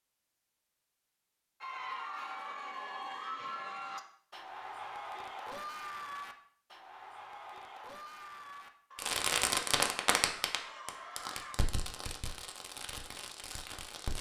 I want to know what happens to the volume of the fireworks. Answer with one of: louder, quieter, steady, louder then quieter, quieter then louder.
quieter.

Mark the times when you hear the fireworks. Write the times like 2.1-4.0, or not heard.
8.9-14.1.